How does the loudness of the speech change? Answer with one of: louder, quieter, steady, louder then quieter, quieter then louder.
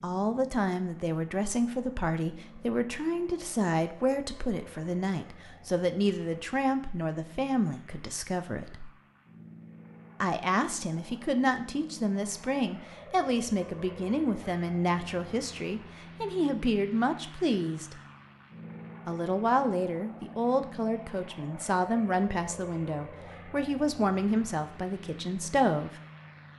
steady.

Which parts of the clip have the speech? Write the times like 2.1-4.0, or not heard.
0.0-8.9, 10.2-17.9, 19.1-26.0.